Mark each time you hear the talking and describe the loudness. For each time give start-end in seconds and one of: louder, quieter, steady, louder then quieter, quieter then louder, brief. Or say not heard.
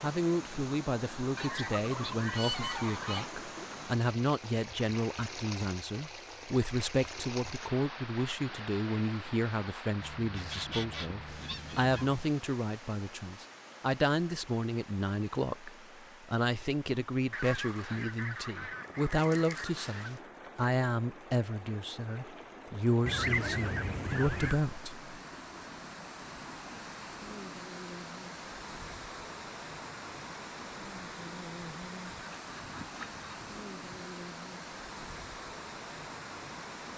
0.0-25.1 steady.